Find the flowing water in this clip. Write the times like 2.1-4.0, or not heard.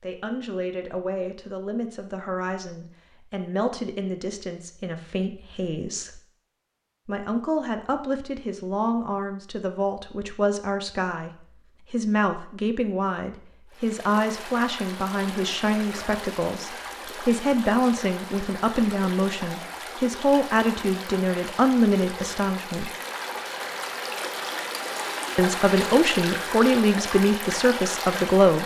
13.7-28.6.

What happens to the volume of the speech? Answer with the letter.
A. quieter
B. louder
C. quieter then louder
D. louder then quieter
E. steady
B.